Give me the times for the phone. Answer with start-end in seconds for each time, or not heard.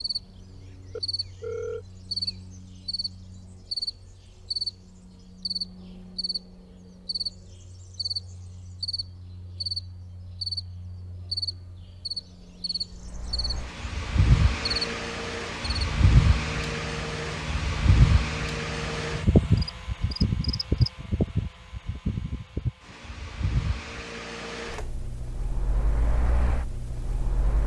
0.9-1.9.